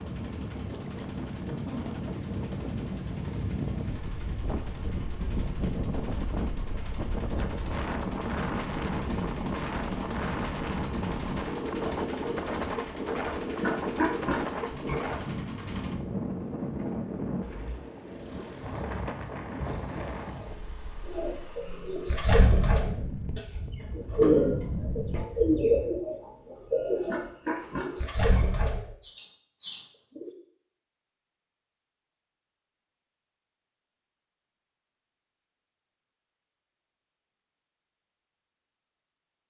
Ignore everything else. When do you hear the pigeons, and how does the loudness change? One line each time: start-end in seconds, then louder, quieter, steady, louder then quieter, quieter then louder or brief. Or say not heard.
21.1-30.3 louder then quieter.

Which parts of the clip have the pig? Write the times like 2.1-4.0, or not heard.
13.6-15.0, 27.1-28.4.